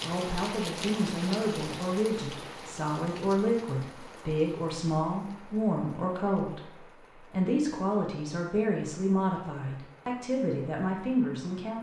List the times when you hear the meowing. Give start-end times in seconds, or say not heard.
not heard.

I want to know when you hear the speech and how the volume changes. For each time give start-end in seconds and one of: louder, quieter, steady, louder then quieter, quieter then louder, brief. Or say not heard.
0.0-11.7 steady.